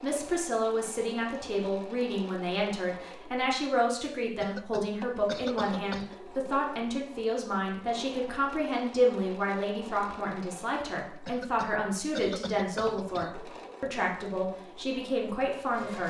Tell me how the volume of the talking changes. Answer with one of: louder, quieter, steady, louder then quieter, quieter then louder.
steady.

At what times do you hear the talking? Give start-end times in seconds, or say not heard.
0.0-16.0.